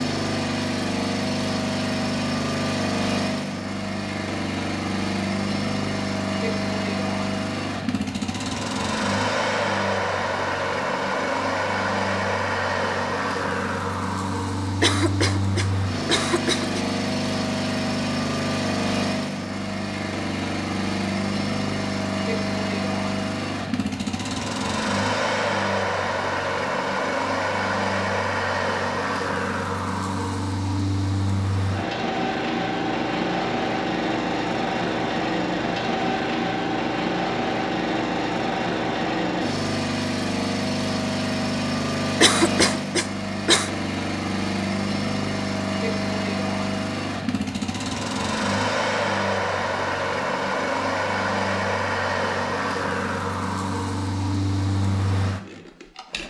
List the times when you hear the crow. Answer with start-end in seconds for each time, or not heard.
not heard.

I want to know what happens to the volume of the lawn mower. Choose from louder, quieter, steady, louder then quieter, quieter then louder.
steady.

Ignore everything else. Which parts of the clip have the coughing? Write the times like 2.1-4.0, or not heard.
14.8-16.8, 42.2-43.7.